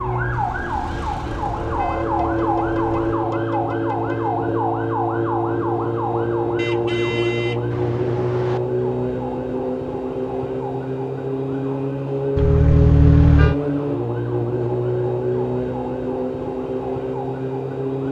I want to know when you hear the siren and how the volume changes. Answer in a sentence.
You can hear the siren from 0.0 to 18.0 s, at a steady volume.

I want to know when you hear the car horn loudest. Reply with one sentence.
The volume of the car horn peaks at 13 seconds.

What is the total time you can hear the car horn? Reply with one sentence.
The car horn can be heard for 6 seconds in total.